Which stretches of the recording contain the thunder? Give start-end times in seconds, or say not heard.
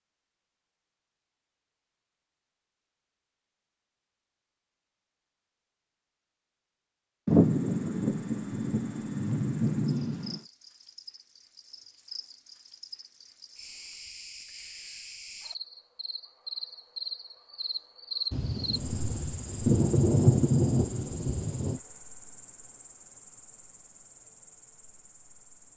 7.2-10.4, 18.3-21.8.